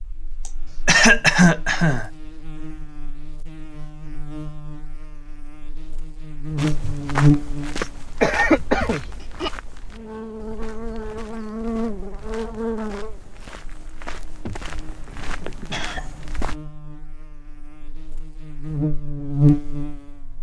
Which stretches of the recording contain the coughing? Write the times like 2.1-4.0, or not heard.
0.5-2.0, 8.2-9.5, 14.4-16.4.